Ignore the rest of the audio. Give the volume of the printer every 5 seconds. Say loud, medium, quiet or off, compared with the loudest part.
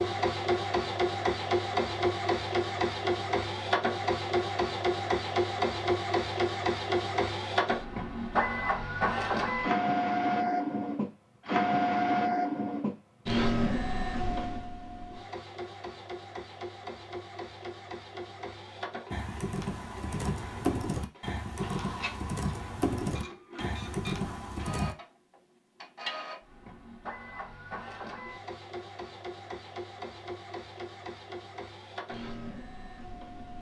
loud, loud, loud, quiet, quiet, quiet, quiet.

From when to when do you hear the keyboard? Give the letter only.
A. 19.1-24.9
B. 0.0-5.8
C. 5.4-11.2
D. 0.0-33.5
A.